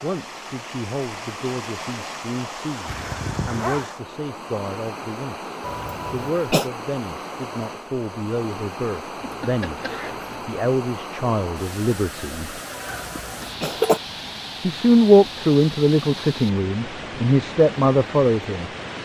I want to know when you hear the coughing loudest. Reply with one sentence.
The volume of the coughing peaks at 14 seconds.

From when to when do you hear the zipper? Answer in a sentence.
The zipper can be heard from 2.9 to 3.9 s, from 9.2 to 10.6 s and from 12.9 to 13.7 s.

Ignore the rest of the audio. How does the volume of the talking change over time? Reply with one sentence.
The volume of the talking goes up.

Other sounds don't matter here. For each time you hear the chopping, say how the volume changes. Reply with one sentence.
The chopping can't be heard in this clip.